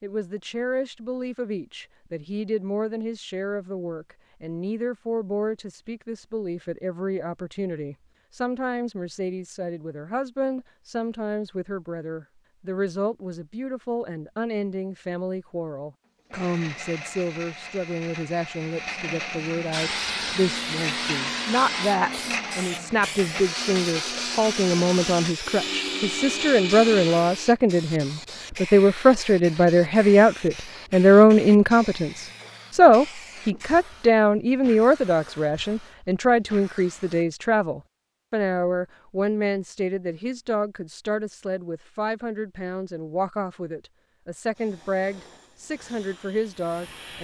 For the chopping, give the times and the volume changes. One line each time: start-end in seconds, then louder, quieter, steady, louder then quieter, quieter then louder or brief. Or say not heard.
not heard.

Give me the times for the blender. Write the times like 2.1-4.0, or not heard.
16.2-27.5.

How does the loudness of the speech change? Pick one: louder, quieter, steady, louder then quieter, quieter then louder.
louder then quieter.